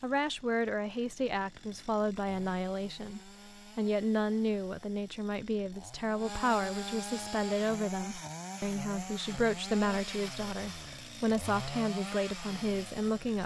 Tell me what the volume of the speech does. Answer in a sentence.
The loudness of the speech stays about the same.